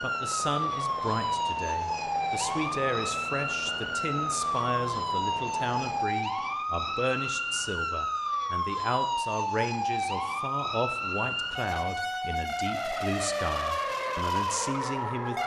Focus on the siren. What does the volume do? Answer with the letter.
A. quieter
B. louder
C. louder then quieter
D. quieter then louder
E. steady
E.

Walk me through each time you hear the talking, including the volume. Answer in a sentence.
The talking can be heard from 0.0 to 15.4 s, at a steady volume.